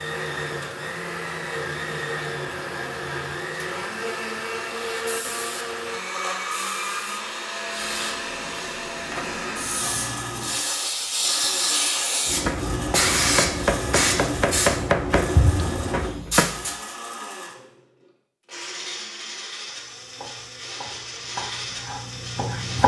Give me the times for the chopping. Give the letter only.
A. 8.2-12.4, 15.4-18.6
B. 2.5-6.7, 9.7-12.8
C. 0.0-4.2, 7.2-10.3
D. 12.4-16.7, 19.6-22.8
D.